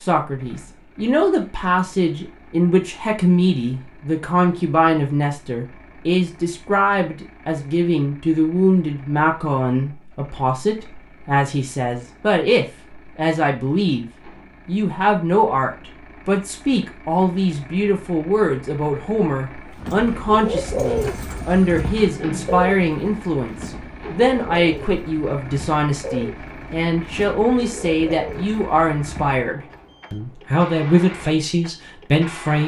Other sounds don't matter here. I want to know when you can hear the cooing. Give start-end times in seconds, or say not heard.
19.6-29.9.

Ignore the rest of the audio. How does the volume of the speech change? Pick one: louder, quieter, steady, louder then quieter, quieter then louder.
steady.